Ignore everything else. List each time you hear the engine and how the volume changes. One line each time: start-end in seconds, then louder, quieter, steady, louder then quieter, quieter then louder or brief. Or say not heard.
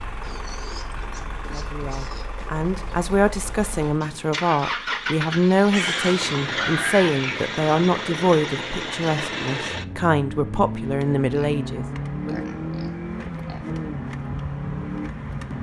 0.0-15.5 louder.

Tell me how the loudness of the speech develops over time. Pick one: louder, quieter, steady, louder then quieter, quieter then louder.
steady.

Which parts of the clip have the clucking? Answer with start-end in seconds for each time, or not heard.
not heard.